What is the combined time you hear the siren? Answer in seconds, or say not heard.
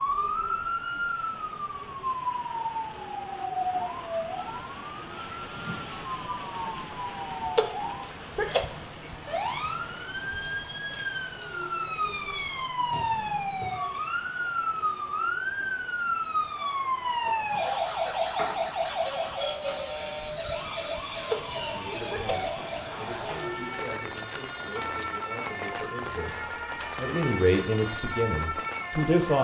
29 s.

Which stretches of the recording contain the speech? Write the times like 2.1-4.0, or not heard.
21.6-29.3.